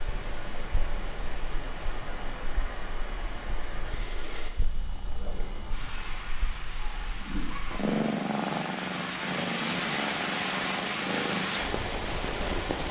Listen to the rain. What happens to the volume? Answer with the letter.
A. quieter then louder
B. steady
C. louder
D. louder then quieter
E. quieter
C.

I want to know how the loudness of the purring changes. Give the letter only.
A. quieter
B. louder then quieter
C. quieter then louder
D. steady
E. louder
E.